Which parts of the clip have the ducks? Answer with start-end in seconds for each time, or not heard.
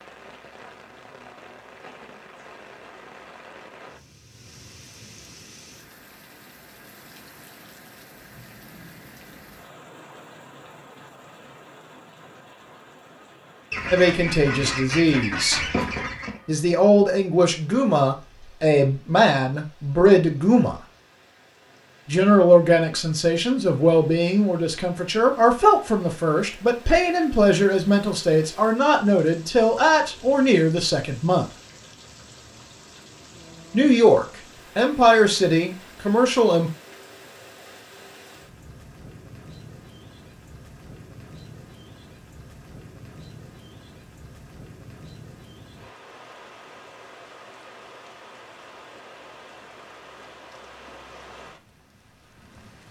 13.7-16.4.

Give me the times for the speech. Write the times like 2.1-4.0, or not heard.
13.9-15.7, 16.4-20.8, 22.1-31.4, 33.7-36.7.